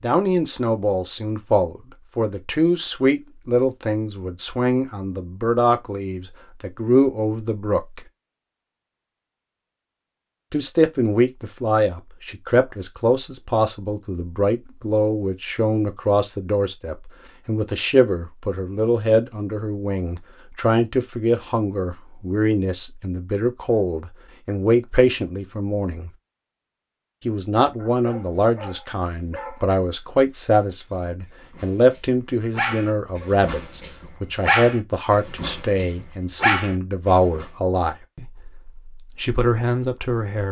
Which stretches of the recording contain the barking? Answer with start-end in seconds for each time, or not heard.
27.8-37.5.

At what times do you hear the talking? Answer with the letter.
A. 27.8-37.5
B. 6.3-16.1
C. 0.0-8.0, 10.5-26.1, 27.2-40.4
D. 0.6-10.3
C.